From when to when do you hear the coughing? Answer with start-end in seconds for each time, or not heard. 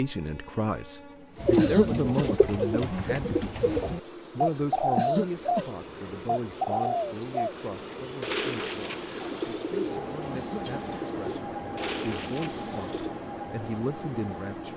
1.6-2.3, 5.0-5.7, 10.3-11.1.